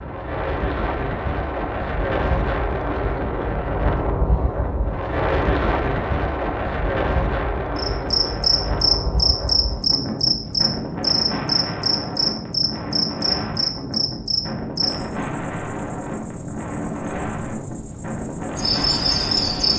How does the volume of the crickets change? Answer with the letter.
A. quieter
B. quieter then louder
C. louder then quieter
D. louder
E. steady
B.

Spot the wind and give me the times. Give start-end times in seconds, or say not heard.
0.0-19.7.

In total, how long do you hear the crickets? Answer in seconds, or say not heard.
12 s.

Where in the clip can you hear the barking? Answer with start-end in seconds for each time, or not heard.
not heard.